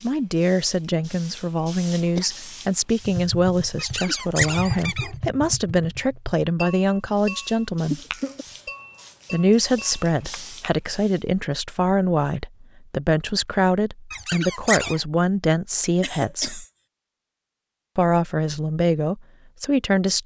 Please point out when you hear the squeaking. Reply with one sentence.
The squeaking can be heard from 3.8 to 5.2 s and from 14.1 to 15.0 s.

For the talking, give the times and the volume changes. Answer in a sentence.
The talking can be heard from 0.0 to 8.0 s, at a steady volume; from 9.3 to 16.6 s, at a steady volume; and briefly from 17.9 to 20.2 s.